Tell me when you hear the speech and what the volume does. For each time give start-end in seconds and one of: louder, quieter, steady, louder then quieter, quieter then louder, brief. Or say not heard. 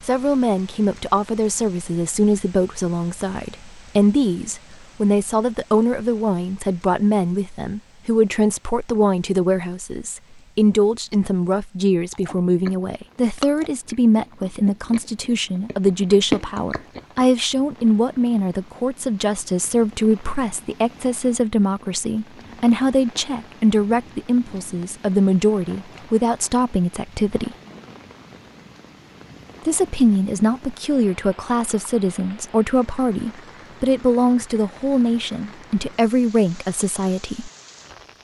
0.0-27.6 steady
29.6-37.5 steady.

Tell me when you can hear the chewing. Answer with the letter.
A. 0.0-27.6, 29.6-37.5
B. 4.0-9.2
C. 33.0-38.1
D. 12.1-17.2
D.